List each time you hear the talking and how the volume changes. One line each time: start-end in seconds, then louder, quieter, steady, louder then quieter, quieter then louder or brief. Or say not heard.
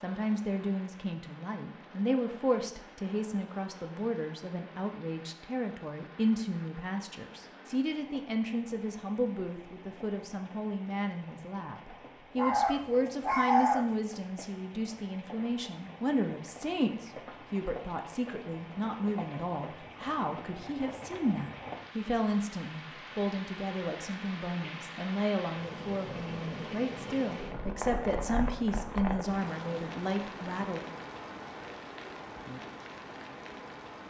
0.0-30.8 steady.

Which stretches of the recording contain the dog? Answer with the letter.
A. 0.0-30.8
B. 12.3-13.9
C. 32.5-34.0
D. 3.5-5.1
B.